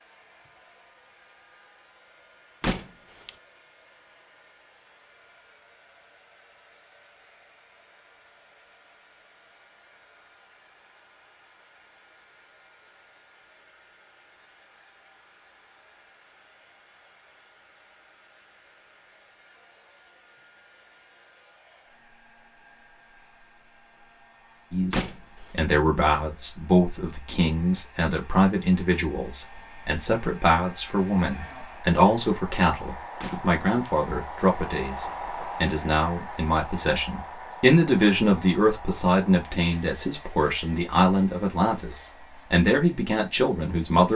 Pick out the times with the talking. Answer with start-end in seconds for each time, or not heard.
24.7-44.1.